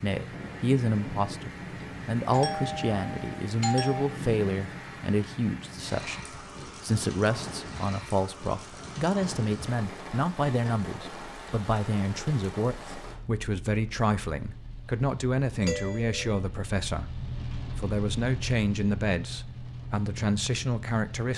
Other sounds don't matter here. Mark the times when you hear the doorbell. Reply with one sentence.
You can hear the doorbell from 2.3 to 4.0 s and from 15.6 to 16.3 s.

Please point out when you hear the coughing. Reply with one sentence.
You can't hear the coughing here.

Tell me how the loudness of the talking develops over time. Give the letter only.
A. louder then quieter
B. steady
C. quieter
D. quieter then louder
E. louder
B.